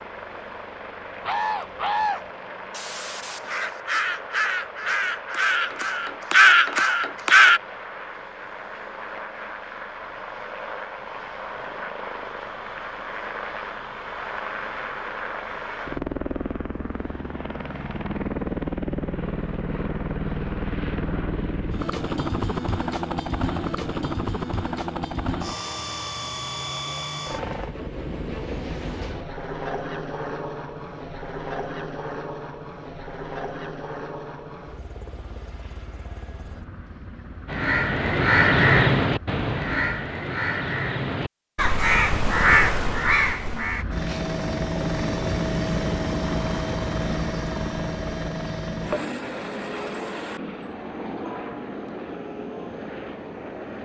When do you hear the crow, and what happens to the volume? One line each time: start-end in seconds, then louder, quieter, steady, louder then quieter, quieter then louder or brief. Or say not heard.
1.2-7.6 quieter then louder
37.5-43.9 quieter then louder.